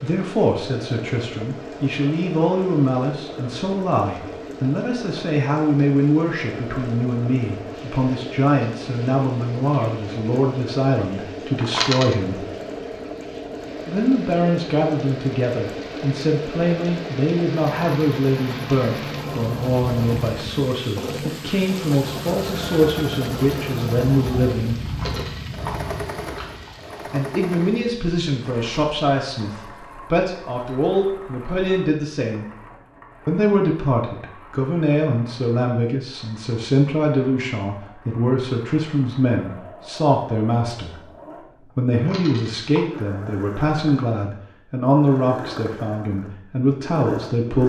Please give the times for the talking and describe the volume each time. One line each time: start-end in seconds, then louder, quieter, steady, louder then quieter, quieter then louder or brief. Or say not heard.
0.0-12.4 steady
13.8-24.8 steady
27.1-32.5 steady
33.2-47.6 steady.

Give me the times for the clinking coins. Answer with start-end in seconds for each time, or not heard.
11.6-12.2, 24.9-26.8, 41.9-42.9.